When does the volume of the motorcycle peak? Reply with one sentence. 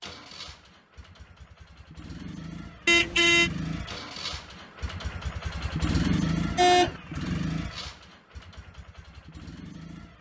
The loudest moment of the motorcycle is at 6 seconds.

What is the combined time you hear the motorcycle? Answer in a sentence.
The motorcycle can be heard for 10 seconds in total.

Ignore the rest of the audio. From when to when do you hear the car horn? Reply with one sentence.
The car horn can be heard from 2.9 to 3.5 s and from 6.5 to 7.0 s.